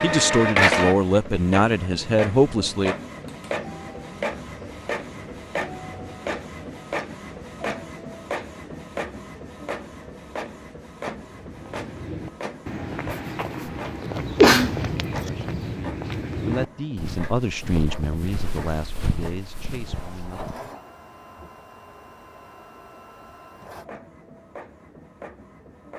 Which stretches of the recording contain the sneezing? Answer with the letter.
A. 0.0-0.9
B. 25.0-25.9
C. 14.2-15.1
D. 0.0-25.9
C.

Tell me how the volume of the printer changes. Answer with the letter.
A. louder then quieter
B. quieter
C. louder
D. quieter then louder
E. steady
B.